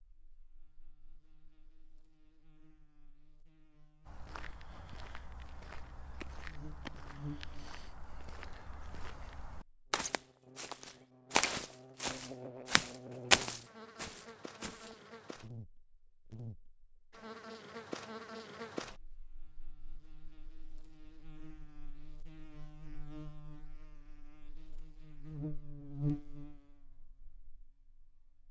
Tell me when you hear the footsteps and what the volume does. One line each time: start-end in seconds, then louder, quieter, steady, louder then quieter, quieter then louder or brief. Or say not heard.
4.0-14.9 louder.